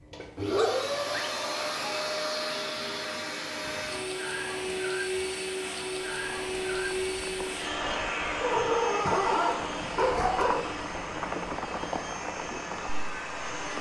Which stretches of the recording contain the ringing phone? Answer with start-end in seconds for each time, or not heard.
not heard.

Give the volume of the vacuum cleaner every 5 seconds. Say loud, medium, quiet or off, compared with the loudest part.
loud, loud, medium.